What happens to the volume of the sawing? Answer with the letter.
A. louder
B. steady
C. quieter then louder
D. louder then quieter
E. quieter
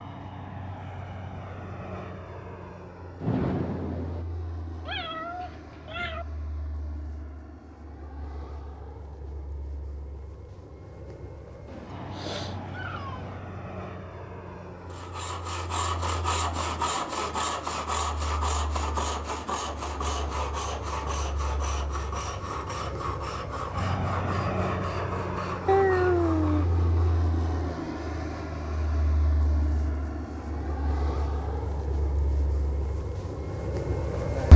E.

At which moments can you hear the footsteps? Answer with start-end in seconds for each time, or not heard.
not heard.